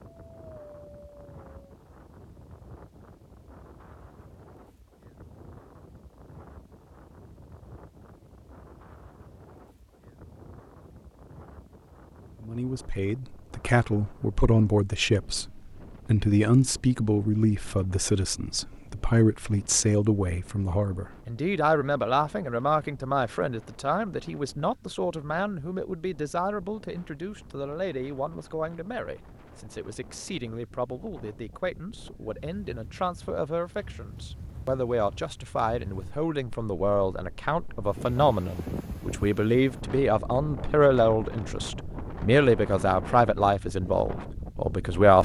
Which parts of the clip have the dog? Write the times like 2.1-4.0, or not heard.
0.1-1.8.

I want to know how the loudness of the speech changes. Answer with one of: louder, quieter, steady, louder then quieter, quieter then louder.
quieter then louder.